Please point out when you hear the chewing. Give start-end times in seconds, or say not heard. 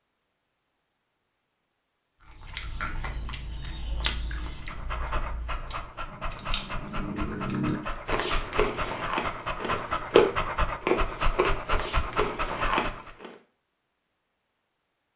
2.2-13.3.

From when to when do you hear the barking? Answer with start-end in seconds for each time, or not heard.
4.7-13.1.